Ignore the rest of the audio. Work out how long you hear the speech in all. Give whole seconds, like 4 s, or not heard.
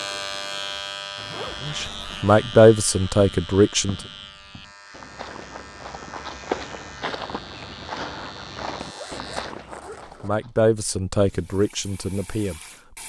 5 s.